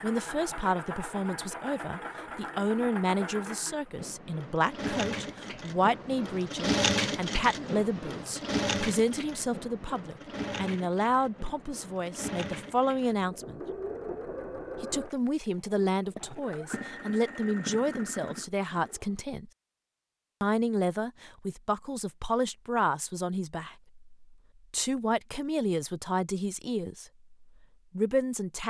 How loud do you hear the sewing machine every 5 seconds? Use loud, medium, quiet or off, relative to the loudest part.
medium, loud, medium, medium, off, off.